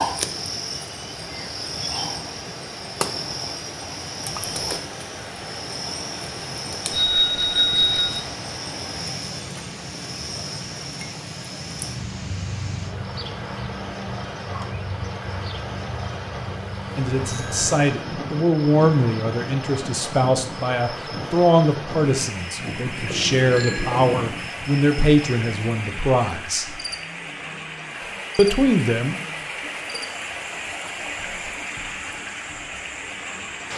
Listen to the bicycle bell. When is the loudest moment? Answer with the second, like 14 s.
8 s.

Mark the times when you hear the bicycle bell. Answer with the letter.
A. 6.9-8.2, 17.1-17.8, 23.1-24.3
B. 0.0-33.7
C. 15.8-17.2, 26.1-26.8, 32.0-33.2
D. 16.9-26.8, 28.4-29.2
A.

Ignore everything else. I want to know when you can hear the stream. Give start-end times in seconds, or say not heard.
0.0-33.7.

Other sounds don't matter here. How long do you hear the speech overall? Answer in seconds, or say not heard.
11 s.